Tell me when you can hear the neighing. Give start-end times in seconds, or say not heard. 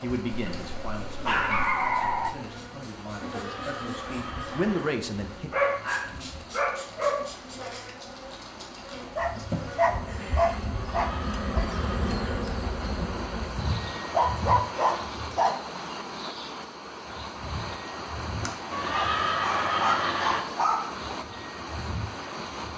3.3-5.0, 10.8-12.4, 18.7-20.4.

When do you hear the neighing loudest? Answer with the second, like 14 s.
20 s.